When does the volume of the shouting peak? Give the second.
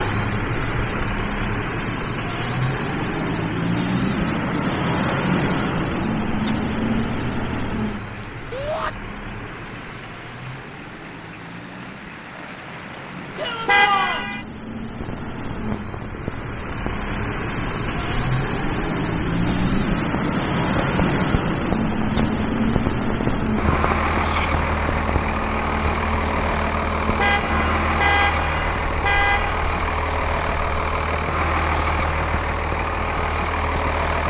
14 s.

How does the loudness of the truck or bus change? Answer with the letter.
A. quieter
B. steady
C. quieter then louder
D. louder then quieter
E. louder
C.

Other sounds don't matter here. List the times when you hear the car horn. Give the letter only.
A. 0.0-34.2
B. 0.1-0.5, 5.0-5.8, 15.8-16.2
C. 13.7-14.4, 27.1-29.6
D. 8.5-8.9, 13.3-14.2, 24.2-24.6
C.